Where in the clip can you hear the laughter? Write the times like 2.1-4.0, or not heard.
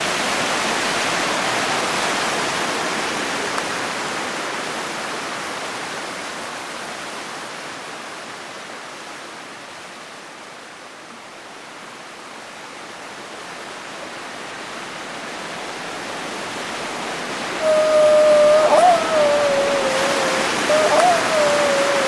not heard.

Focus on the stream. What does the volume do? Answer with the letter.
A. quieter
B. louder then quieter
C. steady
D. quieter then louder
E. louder
D.